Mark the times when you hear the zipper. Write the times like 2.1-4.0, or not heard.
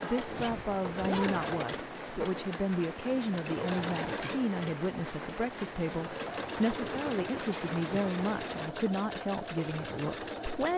0.2-1.5.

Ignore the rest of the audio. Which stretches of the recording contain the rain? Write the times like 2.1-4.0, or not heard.
0.0-8.8.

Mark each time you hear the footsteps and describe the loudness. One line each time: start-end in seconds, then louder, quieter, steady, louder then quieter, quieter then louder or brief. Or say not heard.
not heard.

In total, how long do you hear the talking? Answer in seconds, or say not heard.
11 s.